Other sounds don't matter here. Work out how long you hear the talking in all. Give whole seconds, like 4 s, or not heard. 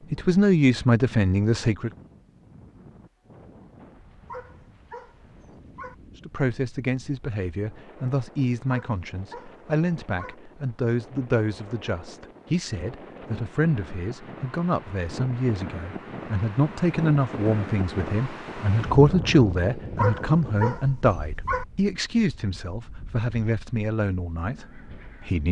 21 s.